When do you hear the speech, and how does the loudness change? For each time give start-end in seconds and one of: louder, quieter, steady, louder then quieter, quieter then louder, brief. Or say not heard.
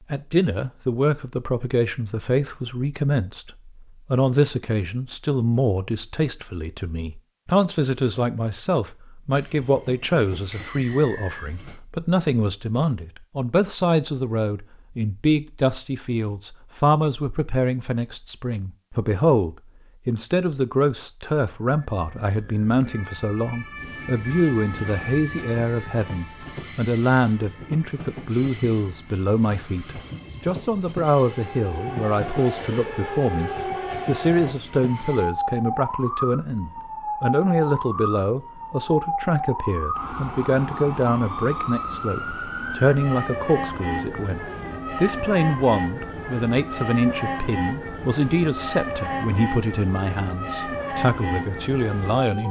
0.1-52.4 steady.